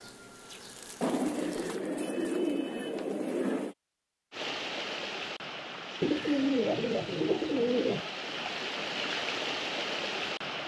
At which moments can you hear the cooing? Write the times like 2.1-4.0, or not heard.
1.0-3.8, 6.0-8.1.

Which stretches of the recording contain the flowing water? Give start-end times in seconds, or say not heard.
4.3-10.6.